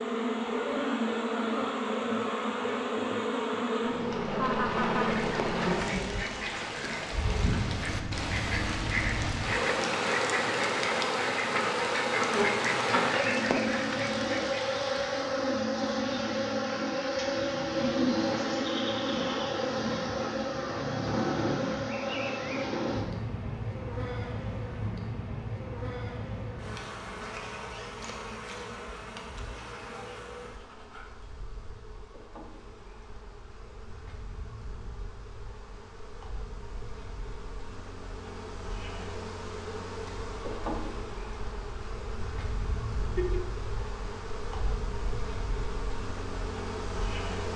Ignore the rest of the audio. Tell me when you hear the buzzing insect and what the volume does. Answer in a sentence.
The buzzing insect can be heard from 0.0 to 47.5 s, getting quieter then louder.